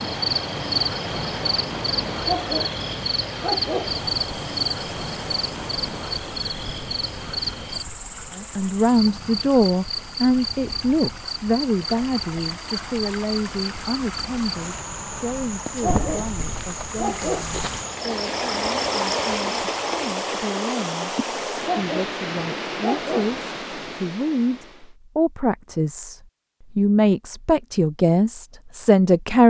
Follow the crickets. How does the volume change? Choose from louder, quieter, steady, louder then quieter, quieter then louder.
quieter.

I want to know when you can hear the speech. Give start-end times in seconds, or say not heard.
8.3-29.4.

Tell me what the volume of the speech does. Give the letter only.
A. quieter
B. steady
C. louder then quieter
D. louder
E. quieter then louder
E.